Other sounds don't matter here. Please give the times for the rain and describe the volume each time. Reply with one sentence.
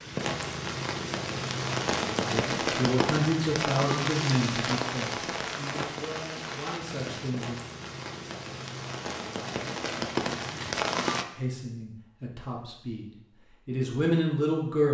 The rain can be heard from 0.0 to 11.2 s, getting quieter then louder.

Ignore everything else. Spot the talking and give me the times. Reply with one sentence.
You can hear the talking from 2.3 to 7.5 s and from 11.3 to 14.8 s.